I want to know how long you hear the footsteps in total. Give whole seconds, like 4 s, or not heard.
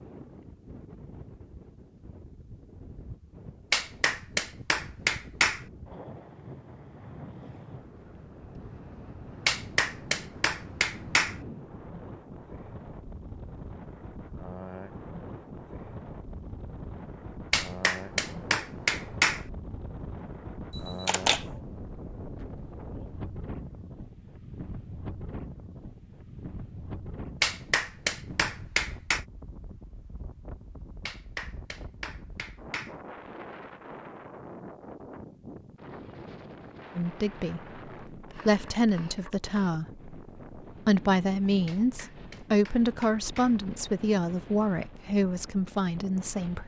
not heard.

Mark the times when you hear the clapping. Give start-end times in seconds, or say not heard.
3.7-5.7, 9.4-11.4, 17.5-19.4, 27.4-29.2, 31.1-33.0, 41.6-43.6.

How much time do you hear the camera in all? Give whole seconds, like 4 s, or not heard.
2 s.